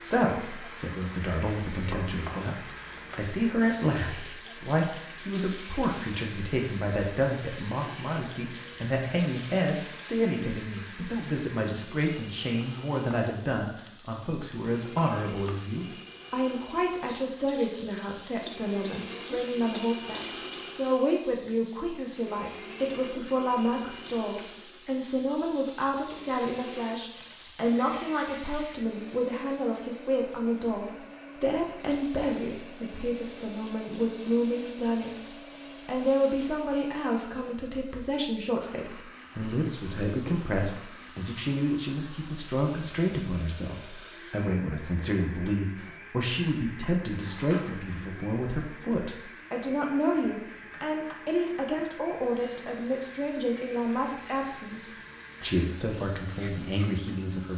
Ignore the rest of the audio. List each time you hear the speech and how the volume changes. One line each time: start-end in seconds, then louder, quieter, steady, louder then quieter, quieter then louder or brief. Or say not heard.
0.0-57.5 steady.